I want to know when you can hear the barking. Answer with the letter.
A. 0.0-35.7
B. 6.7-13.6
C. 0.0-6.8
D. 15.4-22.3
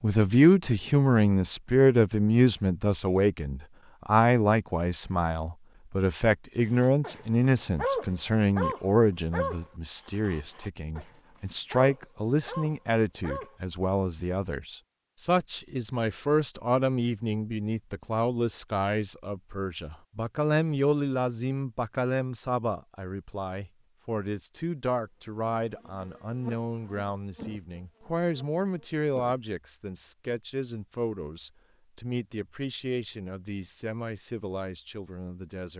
B.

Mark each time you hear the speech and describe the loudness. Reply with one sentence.
The speech can be heard from 0.0 to 35.7 s, getting quieter.